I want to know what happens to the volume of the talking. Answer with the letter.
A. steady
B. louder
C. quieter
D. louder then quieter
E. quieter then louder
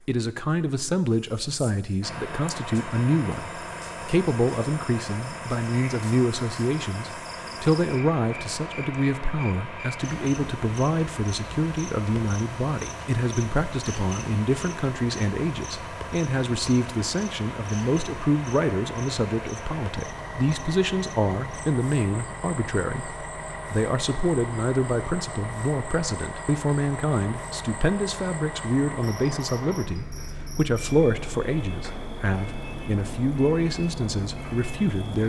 A.